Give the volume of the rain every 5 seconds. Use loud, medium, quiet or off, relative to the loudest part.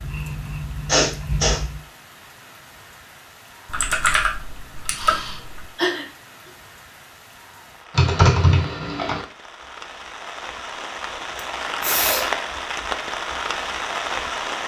quiet, quiet, loud.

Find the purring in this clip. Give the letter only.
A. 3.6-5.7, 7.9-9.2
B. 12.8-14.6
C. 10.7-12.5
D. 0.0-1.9
D.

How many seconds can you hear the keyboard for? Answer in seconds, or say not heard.
3 s.